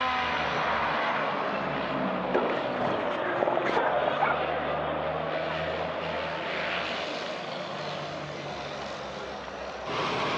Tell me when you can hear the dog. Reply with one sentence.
The dog can be heard from 2.3 to 4.3 s.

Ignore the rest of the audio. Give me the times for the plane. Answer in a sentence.
The plane can be heard from 0.0 to 10.3 s.